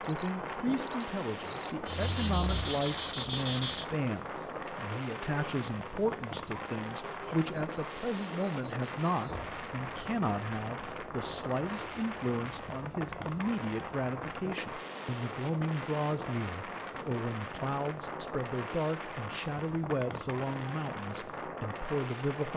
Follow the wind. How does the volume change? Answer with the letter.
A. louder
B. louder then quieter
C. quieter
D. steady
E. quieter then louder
D.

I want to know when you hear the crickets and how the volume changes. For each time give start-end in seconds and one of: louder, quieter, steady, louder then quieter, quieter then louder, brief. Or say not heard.
0.0-14.4 quieter.